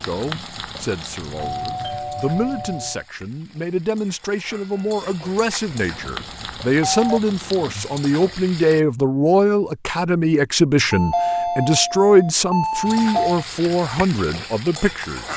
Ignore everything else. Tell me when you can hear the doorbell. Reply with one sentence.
The doorbell can be heard from 1.2 to 3.0 s, from 5.8 to 7.2 s and from 10.9 to 13.4 s.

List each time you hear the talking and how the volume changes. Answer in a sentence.
You can hear the talking from 0.0 to 15.3 s, getting louder.